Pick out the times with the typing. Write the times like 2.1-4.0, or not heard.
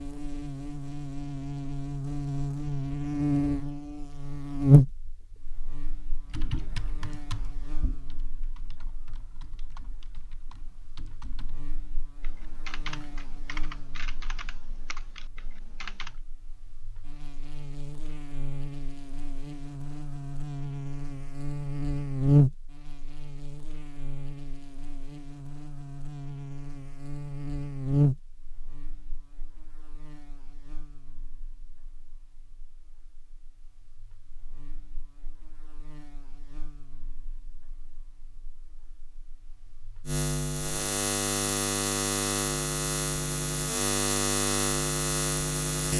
6.2-16.2.